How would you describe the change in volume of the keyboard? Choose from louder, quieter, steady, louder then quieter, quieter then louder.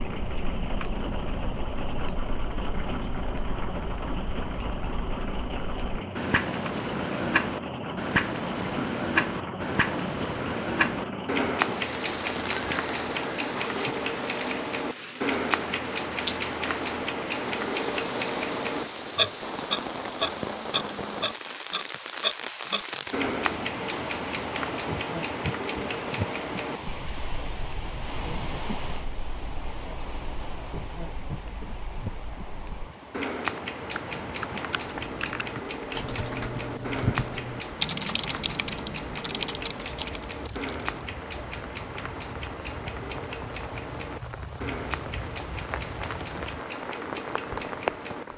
louder then quieter.